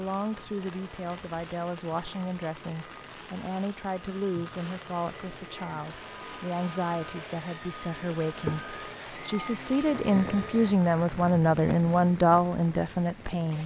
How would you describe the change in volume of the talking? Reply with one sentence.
The volume of the talking goes up.